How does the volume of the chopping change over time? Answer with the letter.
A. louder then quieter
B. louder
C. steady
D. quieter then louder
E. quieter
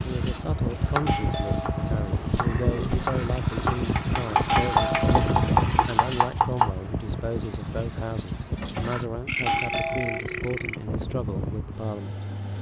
B.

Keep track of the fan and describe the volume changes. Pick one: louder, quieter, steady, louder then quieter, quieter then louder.
quieter.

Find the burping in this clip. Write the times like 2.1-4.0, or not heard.
2.2-3.0, 9.2-10.8.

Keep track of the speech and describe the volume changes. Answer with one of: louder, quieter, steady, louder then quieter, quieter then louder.
steady.